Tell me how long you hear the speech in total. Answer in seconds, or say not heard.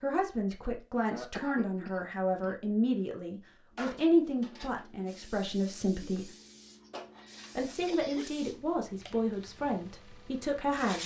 10 s.